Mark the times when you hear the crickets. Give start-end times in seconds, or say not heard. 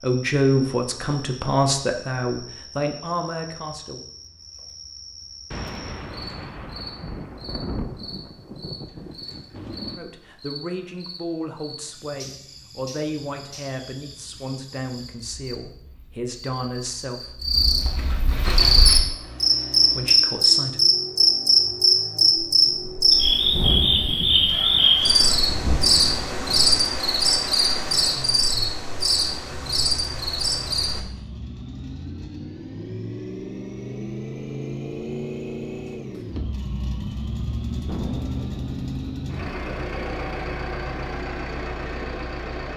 0.0-31.0.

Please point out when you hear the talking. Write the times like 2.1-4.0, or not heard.
0.0-4.0, 9.9-17.4, 19.9-20.9.